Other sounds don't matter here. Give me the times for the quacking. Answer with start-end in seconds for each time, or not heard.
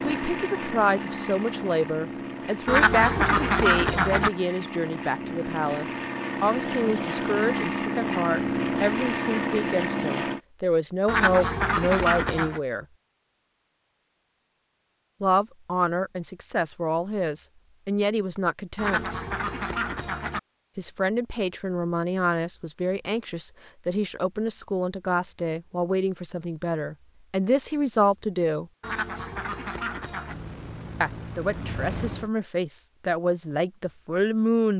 2.6-4.3, 11.1-12.6, 18.8-20.4, 28.8-30.4.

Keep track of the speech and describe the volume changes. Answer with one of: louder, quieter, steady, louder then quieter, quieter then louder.
steady.